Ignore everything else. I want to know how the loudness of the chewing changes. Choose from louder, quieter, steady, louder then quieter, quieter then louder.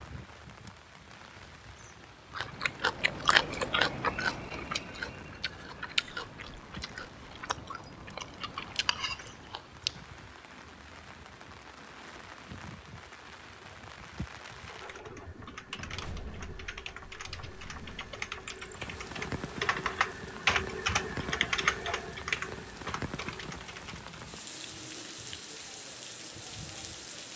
quieter.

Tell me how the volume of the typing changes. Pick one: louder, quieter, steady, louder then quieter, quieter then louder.
louder then quieter.